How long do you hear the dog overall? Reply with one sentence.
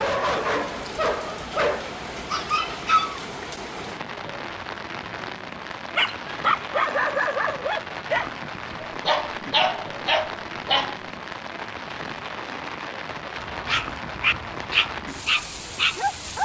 You can hear the dog for 11 seconds altogether.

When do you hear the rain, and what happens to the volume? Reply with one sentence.
The rain can be heard from 0.0 to 16.4 s, at a steady volume.